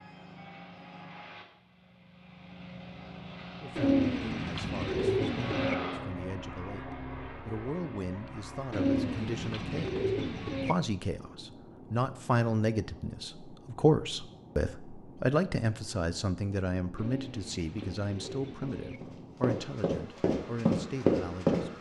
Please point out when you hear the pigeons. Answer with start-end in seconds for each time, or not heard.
3.8-5.8, 8.7-10.8, 16.9-19.0.